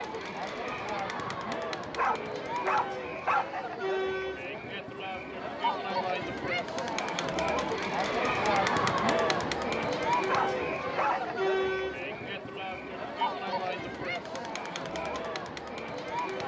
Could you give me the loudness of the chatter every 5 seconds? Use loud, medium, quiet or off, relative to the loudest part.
medium, loud, loud, medium.